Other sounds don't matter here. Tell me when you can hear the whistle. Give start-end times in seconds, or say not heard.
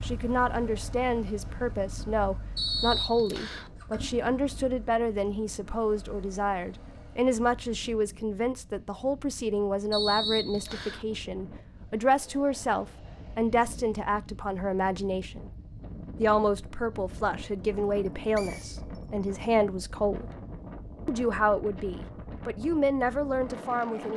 2.5-3.7, 9.9-11.1, 17.9-19.4.